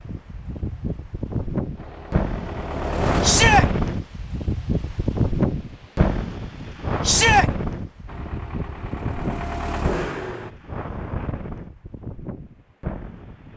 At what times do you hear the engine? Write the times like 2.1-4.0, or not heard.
1.8-3.5, 8.1-10.6.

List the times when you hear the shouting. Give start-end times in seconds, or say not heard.
3.2-3.6, 7.0-7.5.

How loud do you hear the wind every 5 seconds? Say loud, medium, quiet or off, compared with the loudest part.
loud, loud, medium.